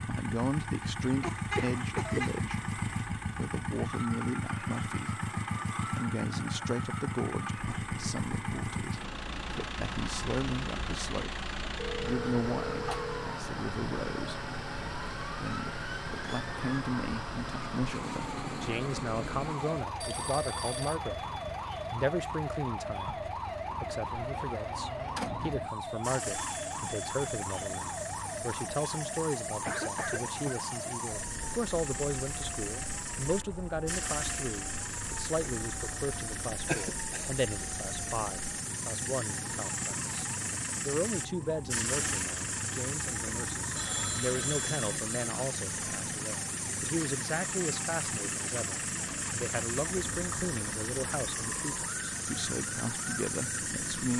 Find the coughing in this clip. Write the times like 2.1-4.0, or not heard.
1.1-2.4, 29.6-30.6, 36.6-37.3.